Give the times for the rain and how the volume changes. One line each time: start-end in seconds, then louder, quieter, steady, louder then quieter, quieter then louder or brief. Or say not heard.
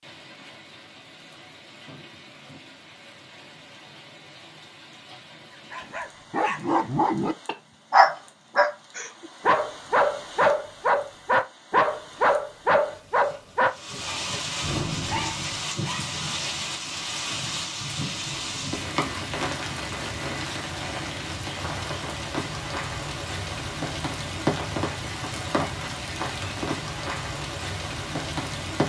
0.0-28.8 louder.